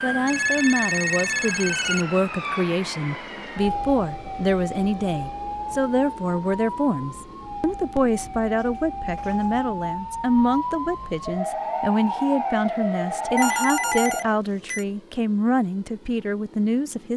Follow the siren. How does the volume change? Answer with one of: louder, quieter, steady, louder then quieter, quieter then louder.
quieter then louder.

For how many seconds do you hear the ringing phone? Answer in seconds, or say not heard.
5 s.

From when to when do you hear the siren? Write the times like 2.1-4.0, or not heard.
0.0-14.4.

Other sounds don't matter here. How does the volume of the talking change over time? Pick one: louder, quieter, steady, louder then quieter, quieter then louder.
steady.